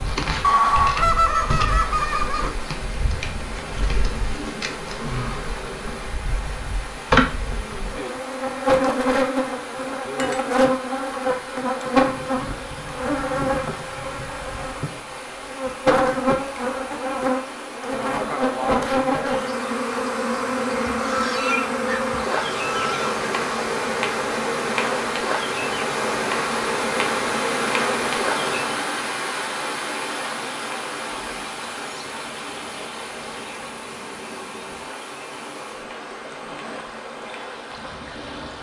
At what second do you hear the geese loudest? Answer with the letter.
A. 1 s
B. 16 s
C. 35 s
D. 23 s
A.